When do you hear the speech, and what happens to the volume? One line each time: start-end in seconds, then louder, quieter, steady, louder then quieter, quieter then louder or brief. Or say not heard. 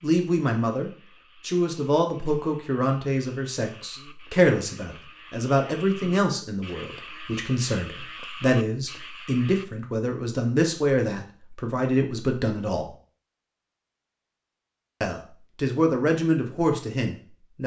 0.0-12.9 steady
15.0-17.6 brief.